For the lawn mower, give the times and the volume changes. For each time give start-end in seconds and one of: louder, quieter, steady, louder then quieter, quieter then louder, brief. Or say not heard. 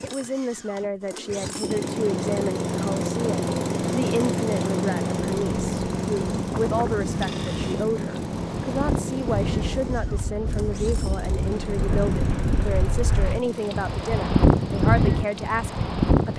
0.0-16.3 quieter.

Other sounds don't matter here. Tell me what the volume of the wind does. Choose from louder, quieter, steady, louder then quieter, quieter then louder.
louder.